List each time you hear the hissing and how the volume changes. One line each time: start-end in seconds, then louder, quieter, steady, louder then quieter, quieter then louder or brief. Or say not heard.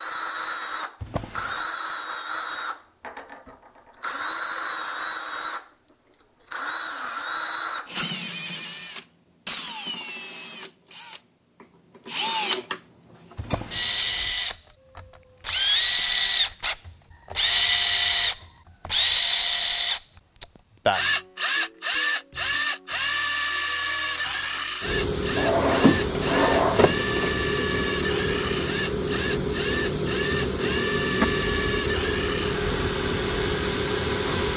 24.8-34.5 steady.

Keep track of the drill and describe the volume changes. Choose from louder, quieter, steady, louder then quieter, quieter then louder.
louder then quieter.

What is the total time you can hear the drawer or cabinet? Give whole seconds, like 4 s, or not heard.
4 s.